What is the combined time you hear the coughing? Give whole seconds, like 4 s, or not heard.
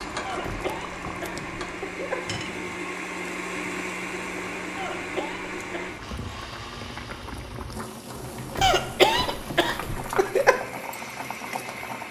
5 s.